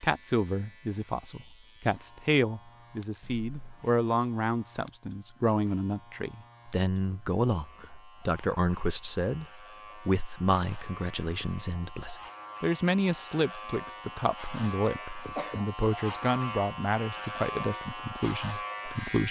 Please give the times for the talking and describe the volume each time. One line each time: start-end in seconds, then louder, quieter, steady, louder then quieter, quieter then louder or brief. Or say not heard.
0.0-19.2 steady.